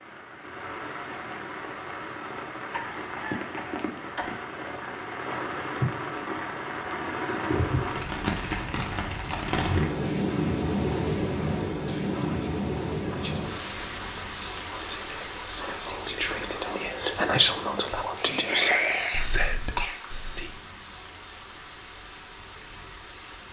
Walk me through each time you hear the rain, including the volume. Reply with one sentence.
The rain can be heard from 0.0 to 23.4 s, getting louder then quieter.